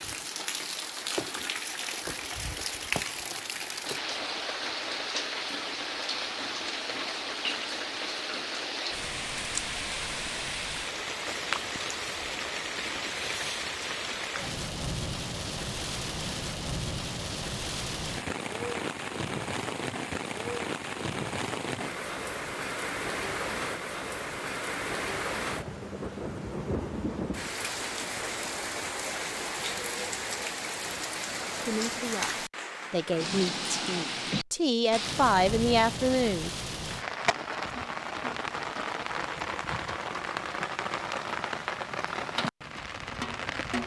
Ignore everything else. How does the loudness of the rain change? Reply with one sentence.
The volume of the rain stays about the same.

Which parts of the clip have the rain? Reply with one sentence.
You can hear the rain from 0.0 to 43.8 s.